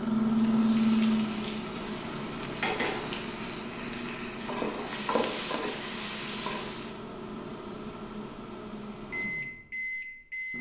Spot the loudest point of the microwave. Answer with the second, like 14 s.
1 s.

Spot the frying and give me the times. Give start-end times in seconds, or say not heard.
0.0-7.0.